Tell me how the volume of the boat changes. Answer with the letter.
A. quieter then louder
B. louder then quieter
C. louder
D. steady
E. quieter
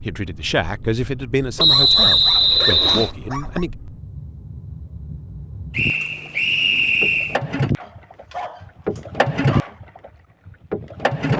C.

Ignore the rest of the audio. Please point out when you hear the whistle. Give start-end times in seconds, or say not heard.
1.6-3.1, 5.8-7.4.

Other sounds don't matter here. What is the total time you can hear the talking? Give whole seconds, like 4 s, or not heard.
4 s.